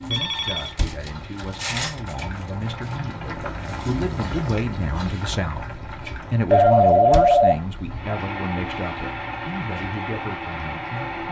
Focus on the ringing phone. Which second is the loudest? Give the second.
7 s.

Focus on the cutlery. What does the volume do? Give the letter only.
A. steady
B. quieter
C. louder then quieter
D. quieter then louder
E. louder
C.